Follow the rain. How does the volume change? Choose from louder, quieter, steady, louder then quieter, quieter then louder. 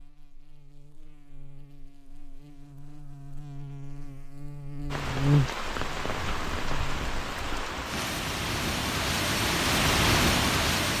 louder.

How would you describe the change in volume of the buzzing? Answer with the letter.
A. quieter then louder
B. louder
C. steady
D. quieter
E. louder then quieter
E.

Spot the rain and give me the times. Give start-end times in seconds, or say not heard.
4.9-10.9.